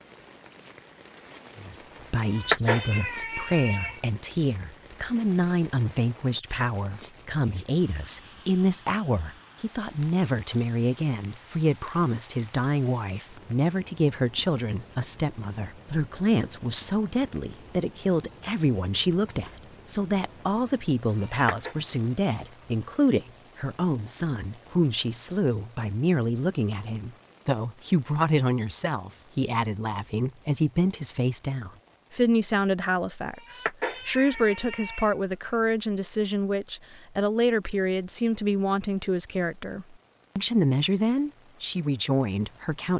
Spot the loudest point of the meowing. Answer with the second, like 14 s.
3 s.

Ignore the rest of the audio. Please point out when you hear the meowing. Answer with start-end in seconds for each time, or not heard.
2.2-4.0, 21.1-21.8, 33.3-35.1.